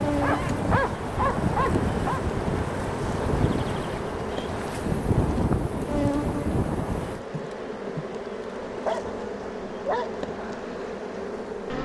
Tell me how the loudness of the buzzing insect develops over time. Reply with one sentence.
The volume of the buzzing insect stays about the same.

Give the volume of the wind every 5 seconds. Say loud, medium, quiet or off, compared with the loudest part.
loud, loud, off.